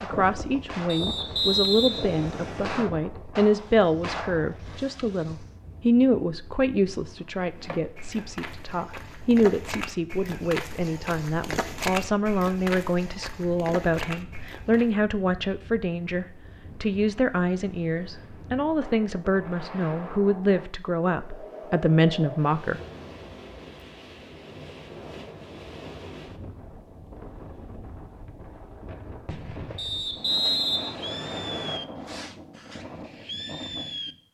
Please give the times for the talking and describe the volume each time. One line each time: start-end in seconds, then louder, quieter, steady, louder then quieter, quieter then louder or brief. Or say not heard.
0.0-22.8 steady.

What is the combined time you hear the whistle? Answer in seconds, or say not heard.
4 s.